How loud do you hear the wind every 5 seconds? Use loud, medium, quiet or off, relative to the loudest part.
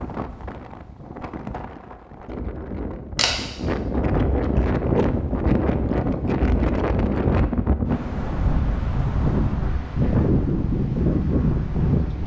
medium, loud, loud.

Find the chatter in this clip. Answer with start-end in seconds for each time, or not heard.
not heard.